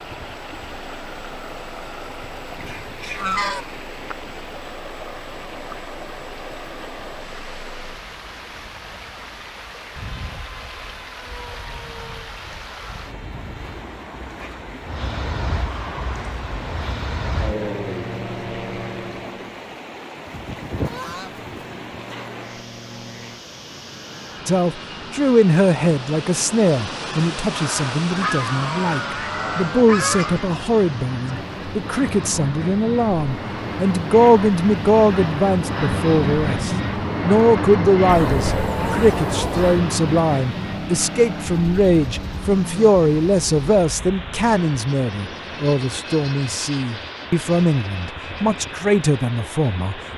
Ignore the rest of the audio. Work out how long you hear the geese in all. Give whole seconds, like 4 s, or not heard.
7 s.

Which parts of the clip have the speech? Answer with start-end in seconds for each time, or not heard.
24.4-50.0.